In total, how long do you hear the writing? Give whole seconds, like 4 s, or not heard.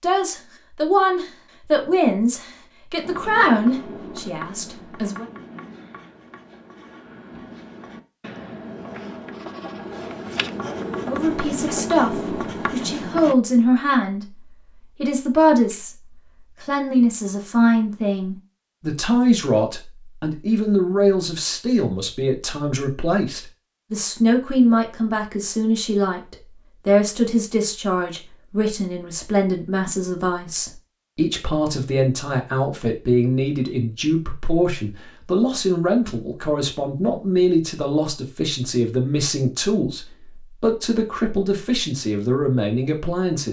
10 s.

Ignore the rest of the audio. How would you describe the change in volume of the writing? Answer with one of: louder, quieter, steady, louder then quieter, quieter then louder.
quieter then louder.